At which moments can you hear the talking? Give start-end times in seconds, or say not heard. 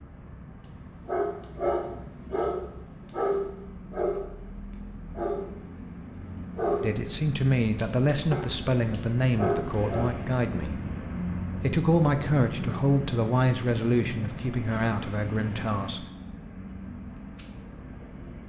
6.8-10.8, 11.6-16.1.